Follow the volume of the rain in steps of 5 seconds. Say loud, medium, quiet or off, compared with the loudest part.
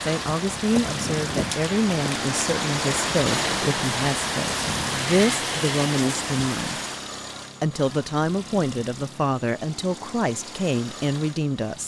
loud, loud, off.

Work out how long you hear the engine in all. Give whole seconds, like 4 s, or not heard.
12 s.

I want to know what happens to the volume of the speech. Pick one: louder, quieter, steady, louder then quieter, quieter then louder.
steady.